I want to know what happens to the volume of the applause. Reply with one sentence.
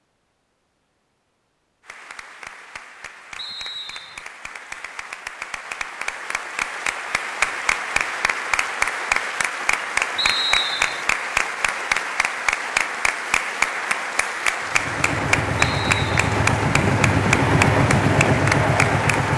The volume of the applause goes up.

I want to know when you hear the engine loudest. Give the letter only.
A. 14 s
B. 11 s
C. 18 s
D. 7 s
C.